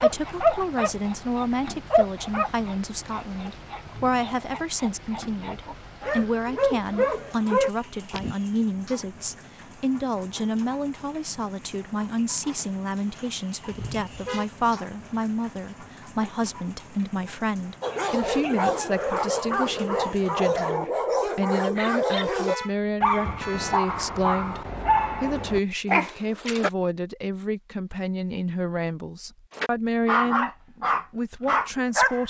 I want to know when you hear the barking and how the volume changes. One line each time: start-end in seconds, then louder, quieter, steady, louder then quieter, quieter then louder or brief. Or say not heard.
0.0-8.3 quieter then louder
17.8-26.7 steady
29.6-32.2 brief.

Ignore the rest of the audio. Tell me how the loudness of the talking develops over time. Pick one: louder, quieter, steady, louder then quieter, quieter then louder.
steady.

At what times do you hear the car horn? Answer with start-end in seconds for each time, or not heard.
3.8-4.2, 13.7-14.4, 22.4-23.9.